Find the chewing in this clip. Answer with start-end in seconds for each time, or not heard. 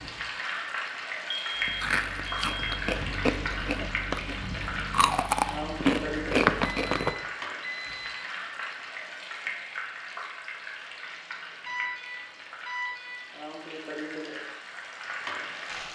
1.6-7.2.